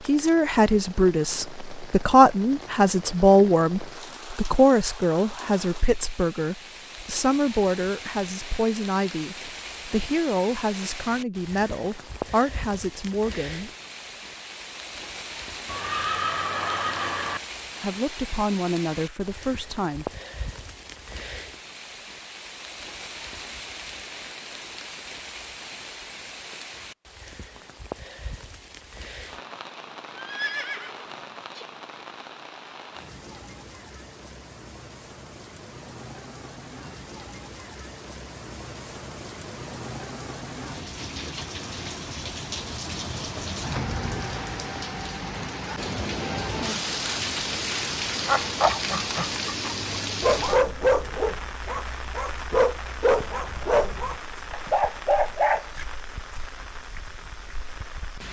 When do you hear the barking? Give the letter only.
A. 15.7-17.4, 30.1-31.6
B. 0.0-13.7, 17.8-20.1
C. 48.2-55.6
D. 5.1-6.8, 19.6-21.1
C.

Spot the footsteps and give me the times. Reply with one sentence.
You can't hear the footsteps here.